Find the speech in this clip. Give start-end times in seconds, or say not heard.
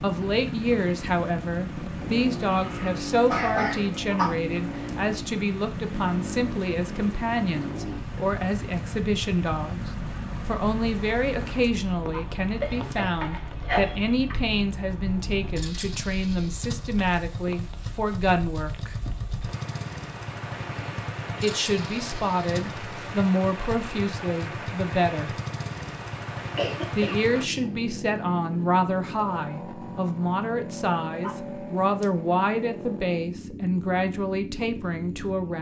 0.0-18.9, 21.4-25.4, 26.9-35.5.